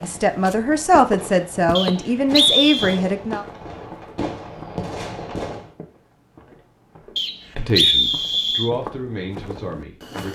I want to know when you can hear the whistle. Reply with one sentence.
The whistle can be heard from 1.8 to 3.0 s and from 7.2 to 8.7 s.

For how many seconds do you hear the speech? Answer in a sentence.
You can hear the speech for 6 seconds altogether.